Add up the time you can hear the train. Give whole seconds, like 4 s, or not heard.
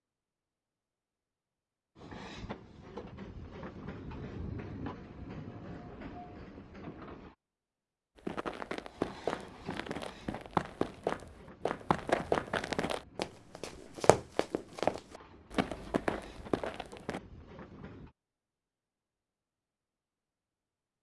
15 s.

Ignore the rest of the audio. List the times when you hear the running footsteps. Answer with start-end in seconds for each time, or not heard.
8.2-17.2.